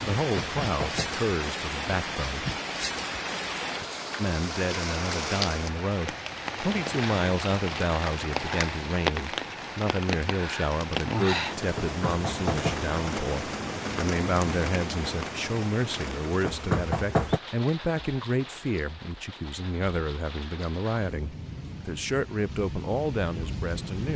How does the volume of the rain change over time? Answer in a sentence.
The volume of the rain goes down.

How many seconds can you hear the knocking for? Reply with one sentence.
You can hear the knocking for 3 seconds altogether.